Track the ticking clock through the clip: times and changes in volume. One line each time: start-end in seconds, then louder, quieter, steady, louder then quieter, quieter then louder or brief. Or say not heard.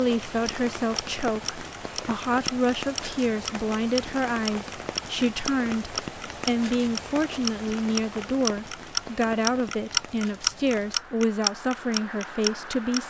0.0-13.0 louder.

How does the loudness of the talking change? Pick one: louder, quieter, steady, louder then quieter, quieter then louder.
steady.